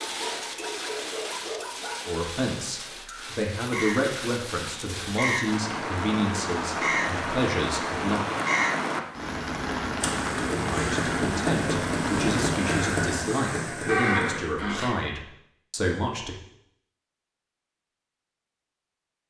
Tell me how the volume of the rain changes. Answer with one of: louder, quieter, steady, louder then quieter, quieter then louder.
louder.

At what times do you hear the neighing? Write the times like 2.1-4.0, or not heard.
13.8-14.9.